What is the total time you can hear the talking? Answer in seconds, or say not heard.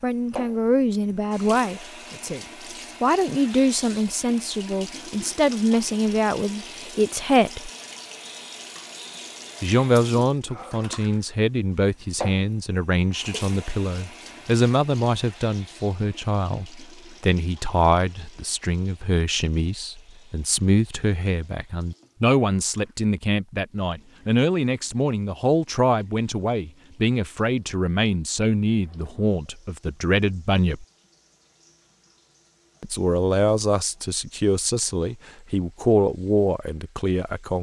33 s.